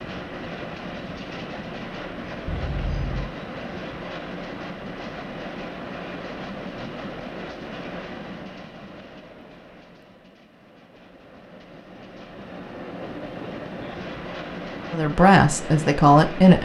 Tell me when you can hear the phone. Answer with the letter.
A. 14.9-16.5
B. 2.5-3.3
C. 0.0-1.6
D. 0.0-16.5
B.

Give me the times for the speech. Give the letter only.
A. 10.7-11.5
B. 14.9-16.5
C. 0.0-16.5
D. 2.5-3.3
B.